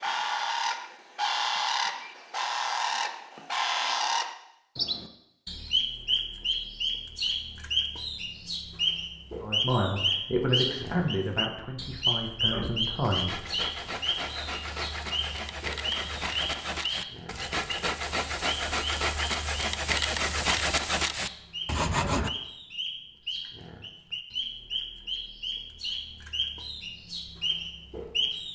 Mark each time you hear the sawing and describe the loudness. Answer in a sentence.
The sawing can be heard from 12.4 to 22.3 s, getting louder.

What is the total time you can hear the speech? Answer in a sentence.
You can hear the speech for 4 seconds altogether.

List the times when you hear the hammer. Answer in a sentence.
The hammer can't be heard in this clip.